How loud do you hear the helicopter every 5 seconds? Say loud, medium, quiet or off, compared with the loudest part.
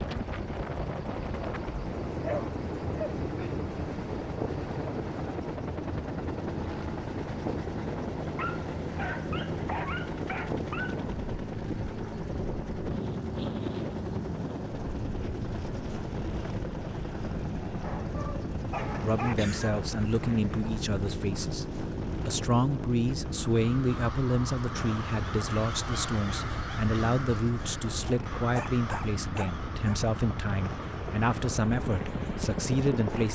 loud, loud, loud, loud, loud, medium, loud.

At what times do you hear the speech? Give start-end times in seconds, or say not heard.
18.9-21.6, 22.2-33.3.